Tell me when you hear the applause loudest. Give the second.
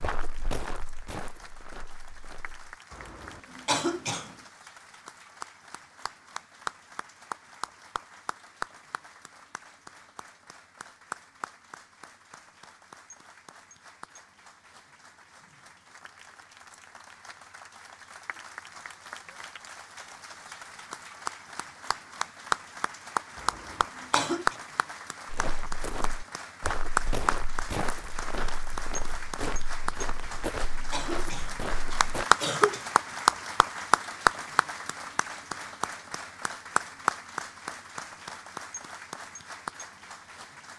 33 s.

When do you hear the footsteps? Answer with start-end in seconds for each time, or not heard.
0.0-2.8, 25.2-32.2.